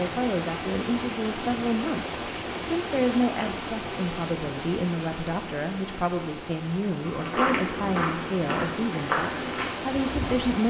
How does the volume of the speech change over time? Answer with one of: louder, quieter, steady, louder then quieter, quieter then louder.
steady.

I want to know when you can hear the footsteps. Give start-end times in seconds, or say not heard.
7.0-10.4.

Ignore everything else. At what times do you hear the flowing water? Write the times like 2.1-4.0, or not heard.
0.0-10.6.